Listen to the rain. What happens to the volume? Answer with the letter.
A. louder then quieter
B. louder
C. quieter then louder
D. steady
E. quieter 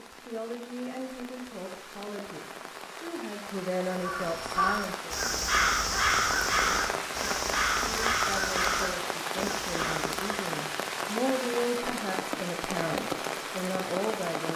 B.